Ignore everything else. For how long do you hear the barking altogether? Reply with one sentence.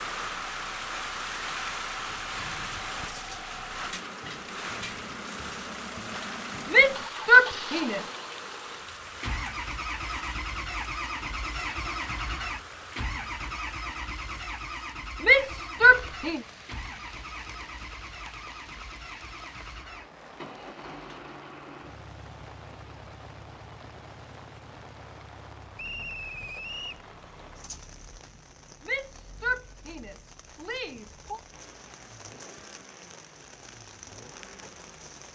The barking can't be heard in this clip.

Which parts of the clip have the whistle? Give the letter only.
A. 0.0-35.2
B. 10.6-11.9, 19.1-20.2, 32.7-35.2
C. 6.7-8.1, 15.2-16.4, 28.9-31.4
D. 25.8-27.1
D.